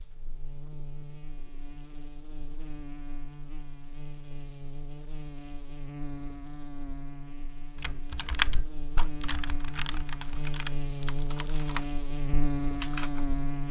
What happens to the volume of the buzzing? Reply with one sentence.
The loudness of the buzzing goes up.